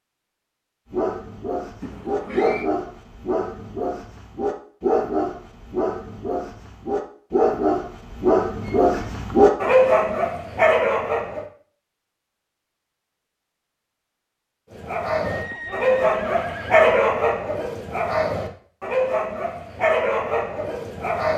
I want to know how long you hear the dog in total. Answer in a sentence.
You can hear the dog for 17 seconds altogether.